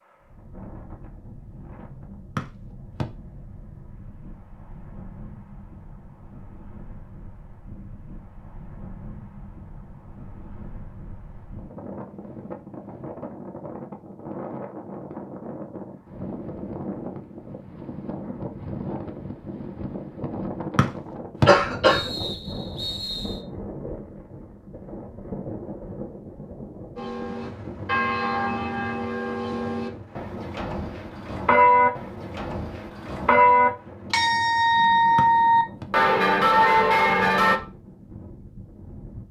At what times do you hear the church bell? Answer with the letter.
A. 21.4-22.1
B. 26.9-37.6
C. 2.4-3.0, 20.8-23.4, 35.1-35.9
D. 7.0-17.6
B.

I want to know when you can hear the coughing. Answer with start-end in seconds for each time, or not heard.
21.4-22.1.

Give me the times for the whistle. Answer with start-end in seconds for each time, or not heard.
2.4-3.0, 20.8-23.4, 35.1-35.9.